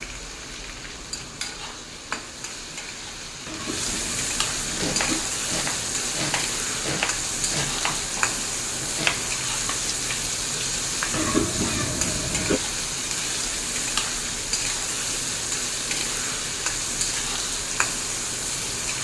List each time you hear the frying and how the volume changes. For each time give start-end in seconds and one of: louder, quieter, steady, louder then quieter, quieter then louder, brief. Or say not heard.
0.0-18.9 louder.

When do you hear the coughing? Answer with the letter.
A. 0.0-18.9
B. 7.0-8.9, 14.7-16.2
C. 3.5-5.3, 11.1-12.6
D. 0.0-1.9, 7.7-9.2
C.